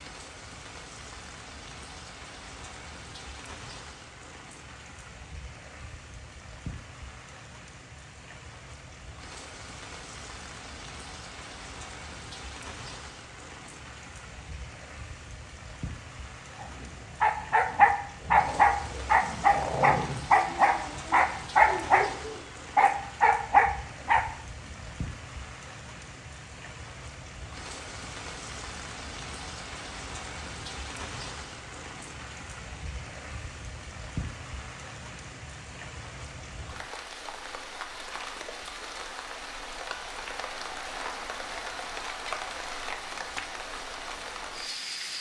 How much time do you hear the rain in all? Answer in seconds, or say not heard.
45 s.